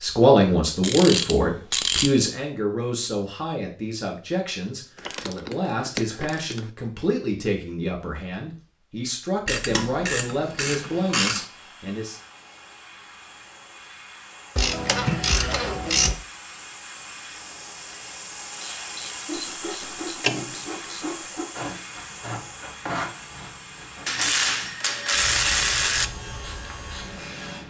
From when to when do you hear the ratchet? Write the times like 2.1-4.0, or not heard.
0.8-2.1, 5.0-6.7, 9.4-11.4, 14.6-16.2, 18.6-21.1, 24.1-26.1.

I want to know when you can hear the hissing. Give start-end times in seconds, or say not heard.
10.4-27.6.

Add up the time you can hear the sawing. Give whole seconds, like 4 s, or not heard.
8 s.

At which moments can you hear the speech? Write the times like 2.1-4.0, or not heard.
0.0-12.2.